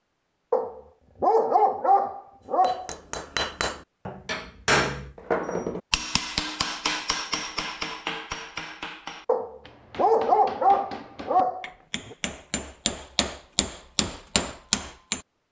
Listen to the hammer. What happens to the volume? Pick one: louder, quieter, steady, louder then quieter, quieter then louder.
quieter then louder.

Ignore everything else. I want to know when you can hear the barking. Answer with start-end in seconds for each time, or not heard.
0.5-3.0, 9.2-12.2.